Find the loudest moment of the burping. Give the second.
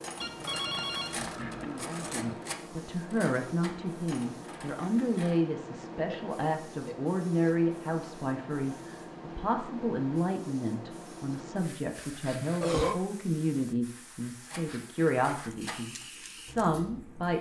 13 s.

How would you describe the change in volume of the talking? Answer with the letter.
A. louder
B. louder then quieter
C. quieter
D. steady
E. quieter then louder
D.